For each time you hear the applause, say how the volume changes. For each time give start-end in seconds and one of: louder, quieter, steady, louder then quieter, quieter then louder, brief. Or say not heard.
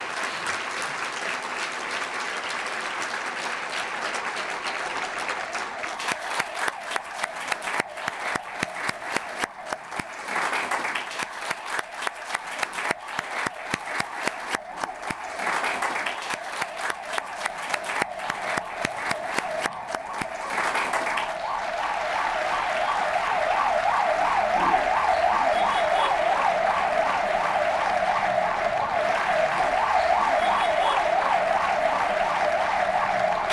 0.0-33.4 steady.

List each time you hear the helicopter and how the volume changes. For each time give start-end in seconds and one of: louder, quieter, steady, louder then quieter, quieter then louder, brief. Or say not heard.
not heard.